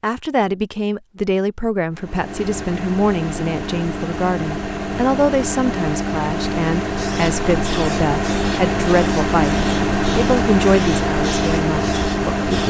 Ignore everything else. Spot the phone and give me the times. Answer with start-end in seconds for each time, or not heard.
not heard.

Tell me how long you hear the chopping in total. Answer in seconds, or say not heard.
not heard.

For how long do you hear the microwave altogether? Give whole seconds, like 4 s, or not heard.
11 s.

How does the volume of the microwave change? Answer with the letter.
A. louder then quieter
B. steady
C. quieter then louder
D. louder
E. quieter
D.